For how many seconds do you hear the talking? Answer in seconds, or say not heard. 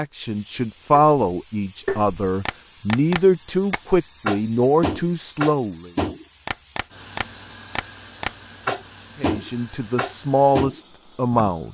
8 s.